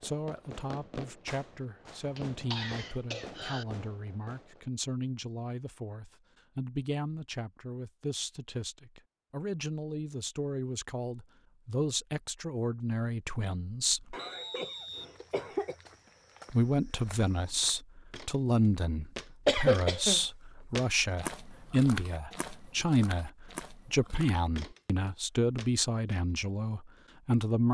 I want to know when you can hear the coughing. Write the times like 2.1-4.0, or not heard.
2.1-3.6, 14.1-15.8, 19.4-20.2.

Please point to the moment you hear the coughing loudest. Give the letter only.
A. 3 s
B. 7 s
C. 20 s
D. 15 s
C.